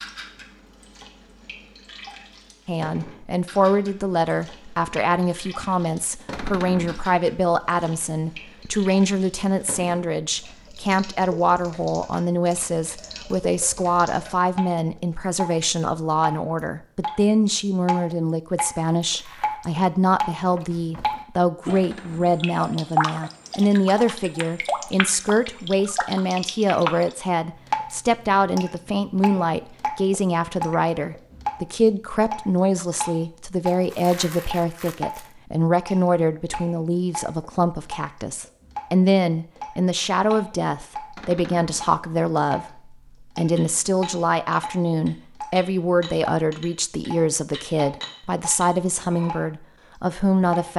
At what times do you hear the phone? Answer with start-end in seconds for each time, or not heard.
not heard.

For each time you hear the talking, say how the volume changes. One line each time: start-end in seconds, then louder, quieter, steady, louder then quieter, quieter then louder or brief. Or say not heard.
2.6-50.7 steady.